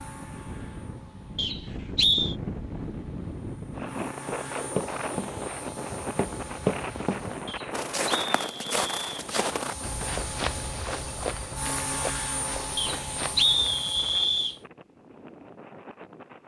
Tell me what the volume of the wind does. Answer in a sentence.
The loudness of the wind goes down.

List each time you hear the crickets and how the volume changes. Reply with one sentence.
You can't hear the crickets here.